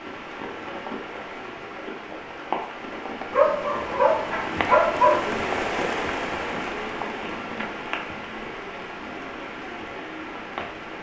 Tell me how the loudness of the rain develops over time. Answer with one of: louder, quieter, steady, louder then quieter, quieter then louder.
louder then quieter.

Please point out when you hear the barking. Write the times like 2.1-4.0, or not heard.
3.3-5.2.